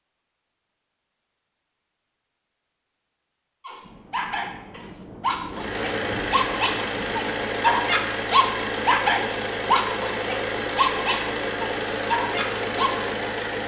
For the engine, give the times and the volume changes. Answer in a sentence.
You can hear the engine from 5.5 to 13.6 s, at a steady volume.